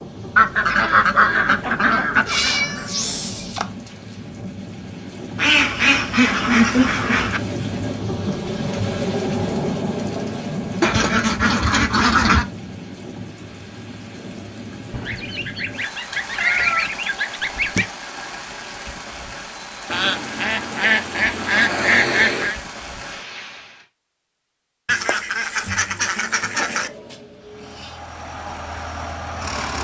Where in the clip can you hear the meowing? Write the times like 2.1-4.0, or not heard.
2.2-3.6, 16.1-17.0, 26.5-28.0.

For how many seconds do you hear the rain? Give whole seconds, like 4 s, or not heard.
24 s.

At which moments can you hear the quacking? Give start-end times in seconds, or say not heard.
0.3-2.9, 5.3-7.4, 10.8-12.4, 14.9-17.9, 19.9-22.6, 24.9-26.9.